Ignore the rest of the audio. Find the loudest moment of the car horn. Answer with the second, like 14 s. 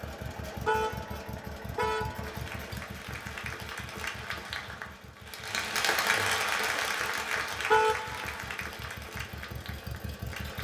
8 s.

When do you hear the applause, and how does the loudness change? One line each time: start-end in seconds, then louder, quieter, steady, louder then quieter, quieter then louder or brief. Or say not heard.
2.2-10.5 louder then quieter.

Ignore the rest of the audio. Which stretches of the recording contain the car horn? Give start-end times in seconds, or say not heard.
0.7-2.4, 7.7-8.4.